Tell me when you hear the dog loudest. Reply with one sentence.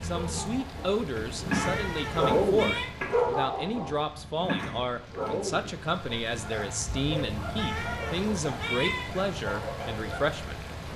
The volume of the dog peaks at 2 seconds.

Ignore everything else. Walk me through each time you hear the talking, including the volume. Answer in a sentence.
You can hear the talking from 0.0 to 10.7 s, at a steady volume.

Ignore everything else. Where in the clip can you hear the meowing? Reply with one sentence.
The meowing can be heard from 1.1 to 2.9 s and from 7.3 to 9.1 s.